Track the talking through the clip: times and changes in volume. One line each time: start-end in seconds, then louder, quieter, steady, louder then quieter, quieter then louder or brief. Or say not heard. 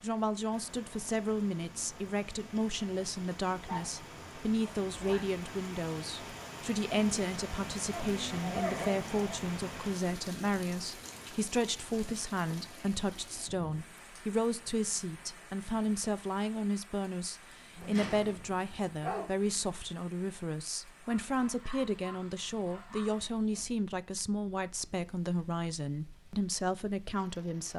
0.0-27.7 steady.